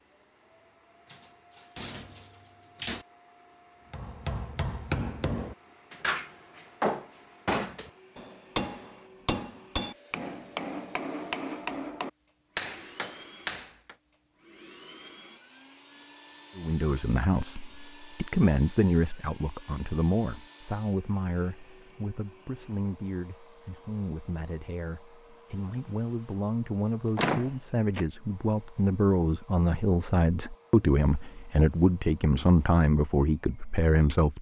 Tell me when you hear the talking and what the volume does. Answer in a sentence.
You can hear the talking from 16.6 to 34.3 s, getting quieter then louder.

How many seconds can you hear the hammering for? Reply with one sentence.
The hammering can be heard for 10 seconds in total.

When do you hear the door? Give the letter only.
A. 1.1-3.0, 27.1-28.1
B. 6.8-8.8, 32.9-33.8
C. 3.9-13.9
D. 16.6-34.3
A.